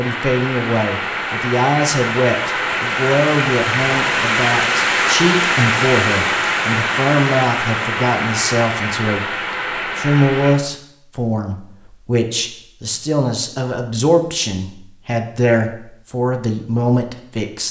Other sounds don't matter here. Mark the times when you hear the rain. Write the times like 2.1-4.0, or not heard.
0.0-10.6.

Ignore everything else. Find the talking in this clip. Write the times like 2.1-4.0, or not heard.
0.0-9.2, 9.9-17.6.